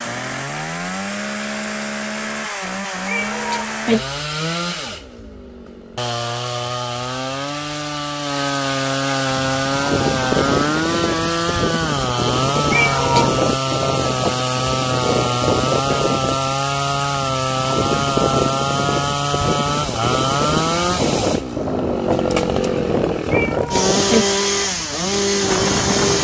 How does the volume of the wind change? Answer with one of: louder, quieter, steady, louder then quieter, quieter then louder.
steady.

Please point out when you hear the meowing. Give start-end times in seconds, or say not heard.
3.0-4.0, 12.7-13.3, 23.3-24.2.